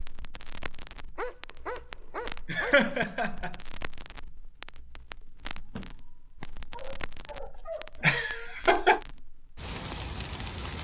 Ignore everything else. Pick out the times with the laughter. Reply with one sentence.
The laughter can be heard from 2.5 to 3.5 s and from 8.0 to 9.0 s.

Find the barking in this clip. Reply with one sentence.
You can hear the barking from 1.1 to 2.9 s and from 5.5 to 8.1 s.